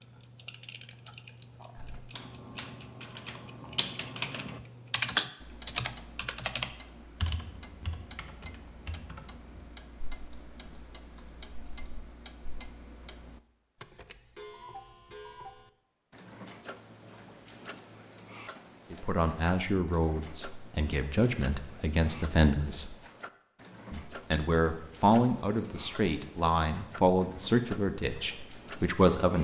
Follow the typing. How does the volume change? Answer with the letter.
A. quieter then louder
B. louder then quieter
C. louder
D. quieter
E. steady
B.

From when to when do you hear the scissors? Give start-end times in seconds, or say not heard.
not heard.